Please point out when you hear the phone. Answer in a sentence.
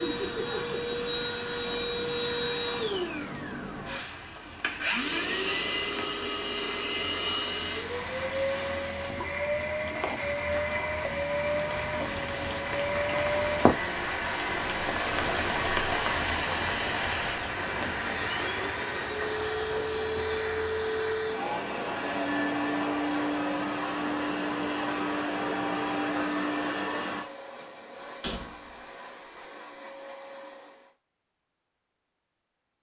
You can't hear the phone here.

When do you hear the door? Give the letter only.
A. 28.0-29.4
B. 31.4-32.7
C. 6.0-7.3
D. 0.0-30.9
A.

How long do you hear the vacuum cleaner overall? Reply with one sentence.
You can hear the vacuum cleaner for 31 seconds altogether.